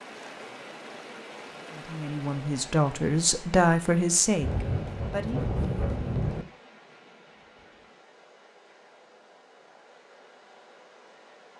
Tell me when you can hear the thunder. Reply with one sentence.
The thunder can be heard from 4.4 to 6.5 s.